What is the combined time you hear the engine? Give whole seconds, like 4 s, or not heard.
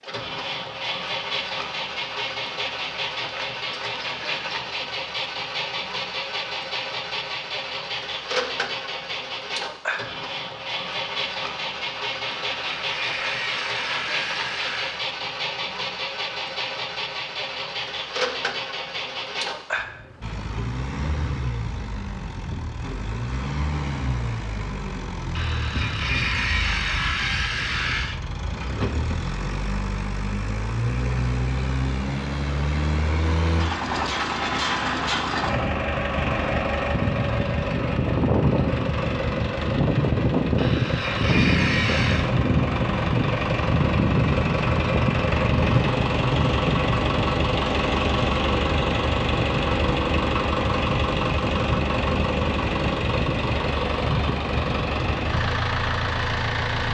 57 s.